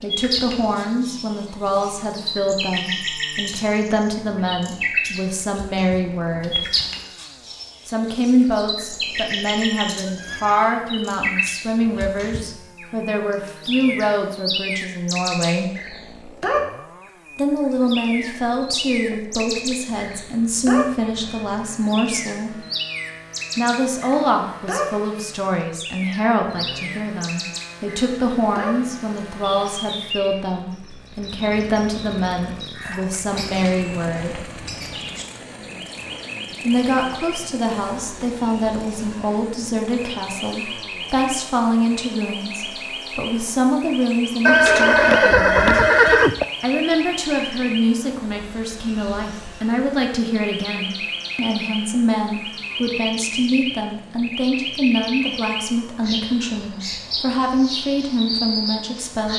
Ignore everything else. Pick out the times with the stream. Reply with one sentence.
You can't hear the stream here.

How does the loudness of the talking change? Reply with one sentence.
The loudness of the talking stays about the same.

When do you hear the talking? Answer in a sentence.
The talking can be heard from 0.0 to 6.7 s, from 7.8 to 15.7 s, from 17.4 to 22.6 s, from 23.6 to 34.5 s, from 36.6 to 45.8 s and from 46.6 to 59.3 s.